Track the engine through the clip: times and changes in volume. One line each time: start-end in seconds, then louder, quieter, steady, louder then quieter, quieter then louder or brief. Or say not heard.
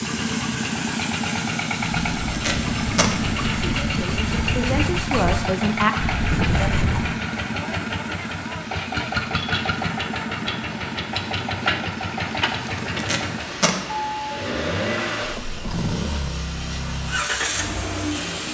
0.0-18.4 steady.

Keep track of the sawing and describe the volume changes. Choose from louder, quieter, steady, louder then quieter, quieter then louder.
louder.